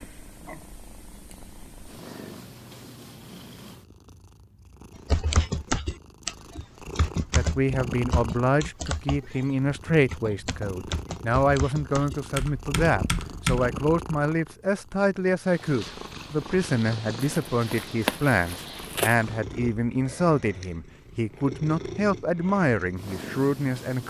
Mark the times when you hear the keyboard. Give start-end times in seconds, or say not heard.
5.1-13.7.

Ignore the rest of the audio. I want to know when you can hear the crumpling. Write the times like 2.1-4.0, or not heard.
17.1-19.1.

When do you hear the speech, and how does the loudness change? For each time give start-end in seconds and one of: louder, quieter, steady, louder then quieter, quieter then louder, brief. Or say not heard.
7.3-24.0 steady.